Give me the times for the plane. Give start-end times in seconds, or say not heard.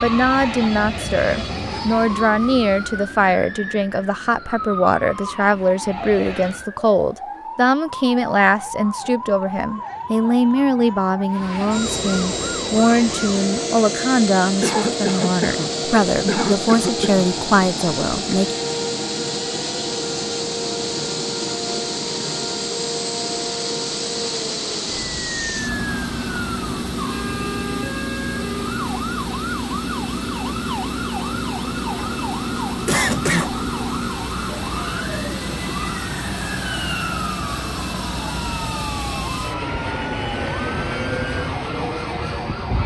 0.0-6.7, 11.3-42.8.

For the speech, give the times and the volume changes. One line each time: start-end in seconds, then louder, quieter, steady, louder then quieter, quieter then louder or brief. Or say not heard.
0.0-18.6 steady.